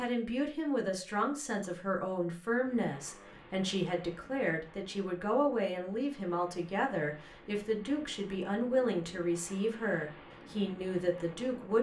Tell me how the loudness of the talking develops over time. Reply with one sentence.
The volume of the talking stays about the same.